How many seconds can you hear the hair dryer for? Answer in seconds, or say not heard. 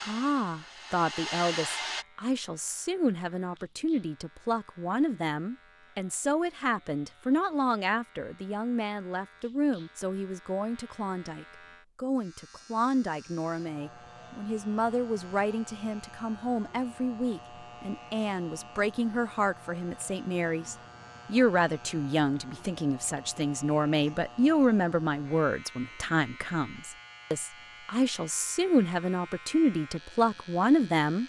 2 s.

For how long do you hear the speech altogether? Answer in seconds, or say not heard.
31 s.